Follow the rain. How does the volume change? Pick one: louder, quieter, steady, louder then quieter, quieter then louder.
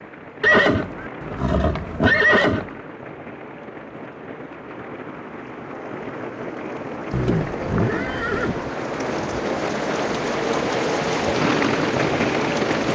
louder.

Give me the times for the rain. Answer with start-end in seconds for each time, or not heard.
0.0-12.9.